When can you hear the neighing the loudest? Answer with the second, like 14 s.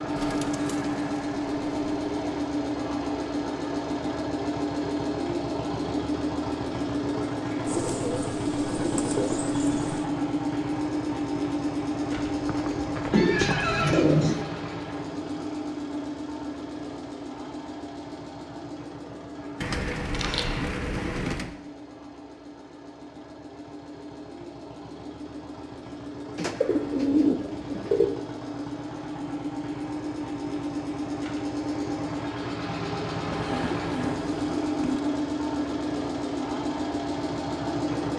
14 s.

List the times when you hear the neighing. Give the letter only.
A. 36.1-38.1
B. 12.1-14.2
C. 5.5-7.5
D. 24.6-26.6
B.